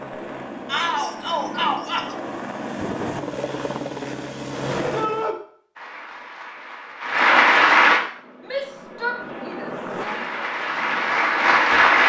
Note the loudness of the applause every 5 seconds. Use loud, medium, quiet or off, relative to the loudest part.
off, loud, loud.